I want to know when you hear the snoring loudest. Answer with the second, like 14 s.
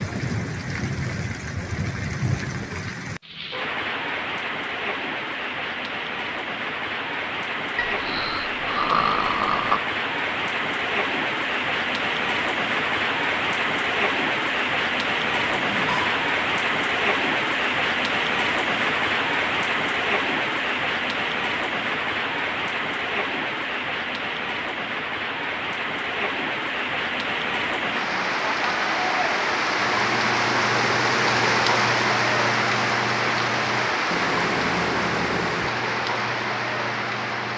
9 s.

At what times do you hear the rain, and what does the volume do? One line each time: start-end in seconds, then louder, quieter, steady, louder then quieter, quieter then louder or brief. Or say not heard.
0.0-37.5 louder.